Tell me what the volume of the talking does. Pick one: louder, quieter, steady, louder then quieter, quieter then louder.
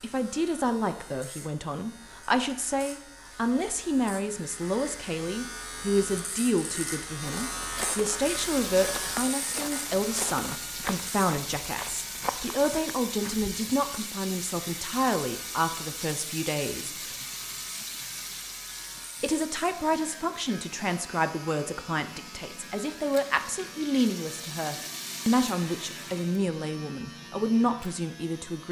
steady.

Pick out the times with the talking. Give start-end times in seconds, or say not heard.
0.0-17.1, 19.2-28.6.